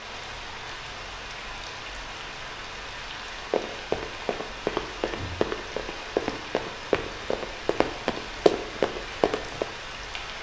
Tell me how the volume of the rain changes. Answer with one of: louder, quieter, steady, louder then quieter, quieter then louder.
steady.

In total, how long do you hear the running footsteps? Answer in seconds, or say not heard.
6 s.